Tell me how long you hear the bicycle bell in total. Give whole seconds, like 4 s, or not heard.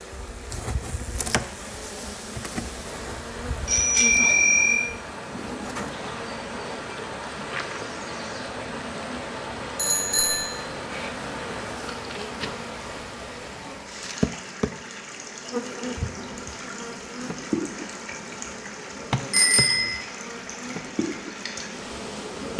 3 s.